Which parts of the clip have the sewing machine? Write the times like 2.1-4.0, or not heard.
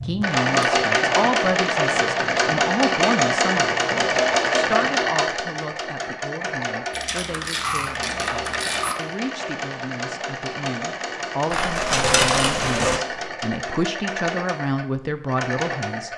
0.0-16.1.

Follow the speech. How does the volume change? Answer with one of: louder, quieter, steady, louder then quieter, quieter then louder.
quieter then louder.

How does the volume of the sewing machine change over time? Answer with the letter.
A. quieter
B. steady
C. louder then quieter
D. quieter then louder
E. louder
A.